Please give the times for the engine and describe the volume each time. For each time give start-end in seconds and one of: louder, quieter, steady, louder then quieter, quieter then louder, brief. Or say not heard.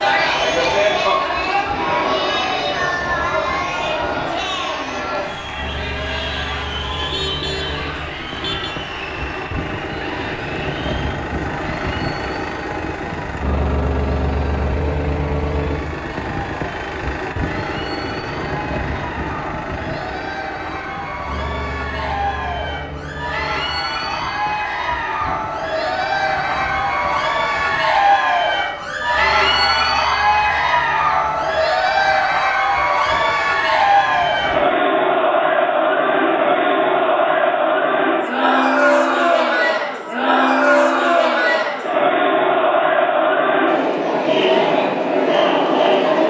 0.0-34.6 louder then quieter.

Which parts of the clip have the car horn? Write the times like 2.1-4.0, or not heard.
7.0-8.8.